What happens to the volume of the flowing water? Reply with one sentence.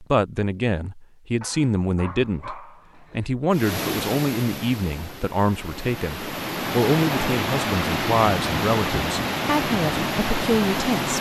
The loudness of the flowing water goes up.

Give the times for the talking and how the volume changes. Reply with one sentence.
You can hear the talking from 0.0 to 11.1 s, at a steady volume.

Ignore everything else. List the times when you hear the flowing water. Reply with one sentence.
You can hear the flowing water from 3.5 to 11.1 s.